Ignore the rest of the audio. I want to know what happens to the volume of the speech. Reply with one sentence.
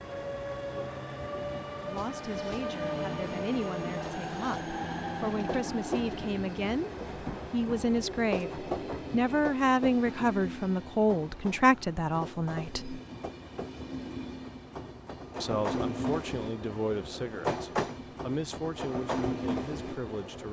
The loudness of the speech goes up, then down.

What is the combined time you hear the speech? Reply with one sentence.
The speech can be heard for 16 seconds in total.